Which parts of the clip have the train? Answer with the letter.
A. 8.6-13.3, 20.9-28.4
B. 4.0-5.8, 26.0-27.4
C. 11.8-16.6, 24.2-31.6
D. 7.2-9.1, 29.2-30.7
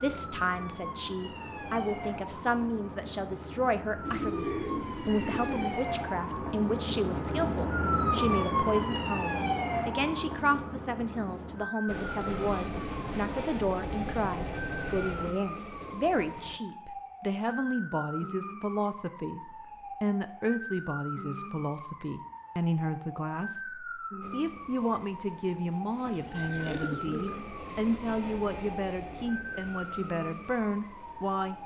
C.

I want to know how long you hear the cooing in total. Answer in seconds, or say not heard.
3 s.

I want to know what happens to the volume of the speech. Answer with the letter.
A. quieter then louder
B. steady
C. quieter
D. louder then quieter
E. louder
B.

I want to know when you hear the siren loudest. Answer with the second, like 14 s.
8 s.